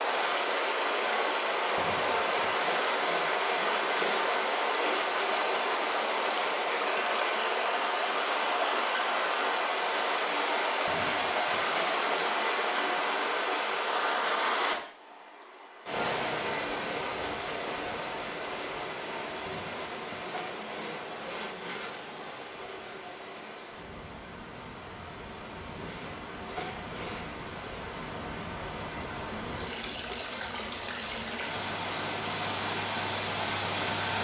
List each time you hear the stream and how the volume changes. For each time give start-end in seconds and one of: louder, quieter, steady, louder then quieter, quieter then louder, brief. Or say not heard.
0.0-34.1 quieter then louder.